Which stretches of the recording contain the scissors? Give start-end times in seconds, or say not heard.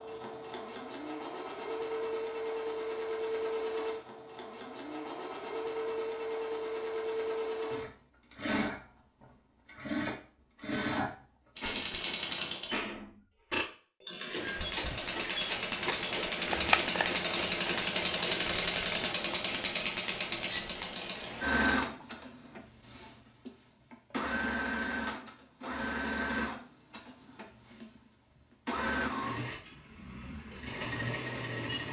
15.8-17.1.